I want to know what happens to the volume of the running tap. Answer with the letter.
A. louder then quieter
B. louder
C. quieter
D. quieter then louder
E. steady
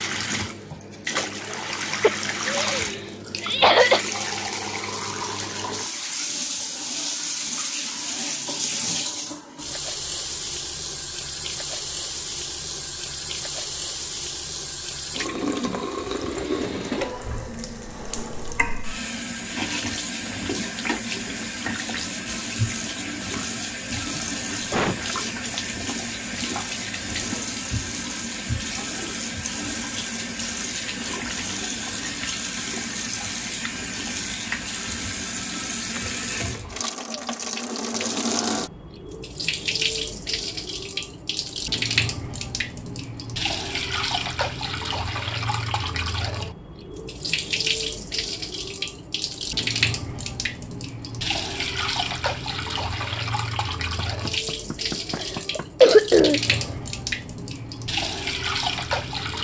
E.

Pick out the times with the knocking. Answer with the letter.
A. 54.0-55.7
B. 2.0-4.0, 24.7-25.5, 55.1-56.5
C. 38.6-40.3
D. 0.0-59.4
A.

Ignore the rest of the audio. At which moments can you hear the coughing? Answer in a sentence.
You can hear the coughing from 2.0 to 4.0 s, from 24.7 to 25.5 s and from 55.1 to 56.5 s.